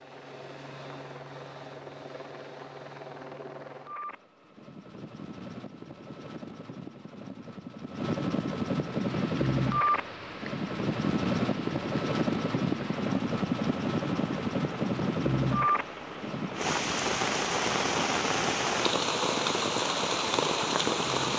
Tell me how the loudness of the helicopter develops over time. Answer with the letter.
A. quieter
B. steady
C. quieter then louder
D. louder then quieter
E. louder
D.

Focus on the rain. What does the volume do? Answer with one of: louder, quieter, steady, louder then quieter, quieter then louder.
louder.